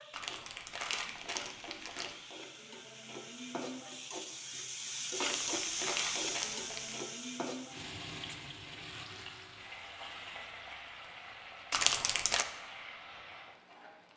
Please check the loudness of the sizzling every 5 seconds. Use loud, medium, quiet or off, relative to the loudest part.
medium, loud, medium.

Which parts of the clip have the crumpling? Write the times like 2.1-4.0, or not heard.
0.1-2.1, 5.2-7.0, 11.7-12.4.